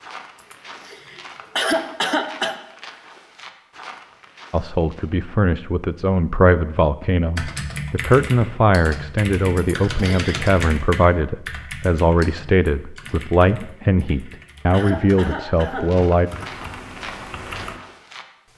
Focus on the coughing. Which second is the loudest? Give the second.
2 s.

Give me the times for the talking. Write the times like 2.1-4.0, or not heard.
4.5-16.3.